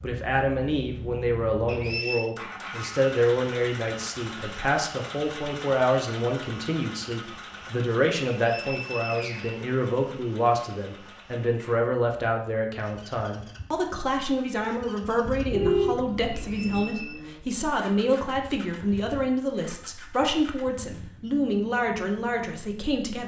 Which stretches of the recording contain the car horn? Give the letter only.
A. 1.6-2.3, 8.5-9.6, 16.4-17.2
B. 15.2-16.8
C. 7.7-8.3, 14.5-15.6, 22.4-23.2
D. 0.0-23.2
B.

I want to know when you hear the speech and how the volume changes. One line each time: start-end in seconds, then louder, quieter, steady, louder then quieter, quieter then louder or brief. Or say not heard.
0.0-23.2 steady.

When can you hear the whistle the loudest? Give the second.
2 s.